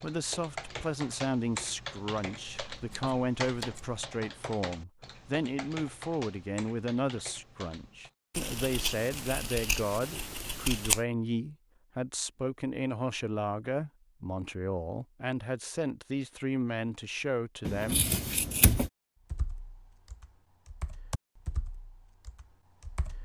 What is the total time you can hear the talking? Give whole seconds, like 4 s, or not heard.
18 s.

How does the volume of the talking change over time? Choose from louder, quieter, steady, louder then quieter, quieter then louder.
steady.